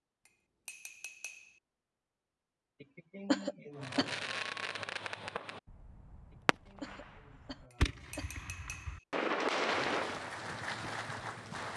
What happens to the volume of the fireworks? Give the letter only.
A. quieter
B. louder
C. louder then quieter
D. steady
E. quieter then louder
E.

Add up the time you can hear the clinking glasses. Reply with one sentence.
You can hear the clinking glasses for 3 seconds altogether.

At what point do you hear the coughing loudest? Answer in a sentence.
The volume of the coughing peaks at 3 seconds.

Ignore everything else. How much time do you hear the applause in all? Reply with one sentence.
You can hear the applause for 2 seconds altogether.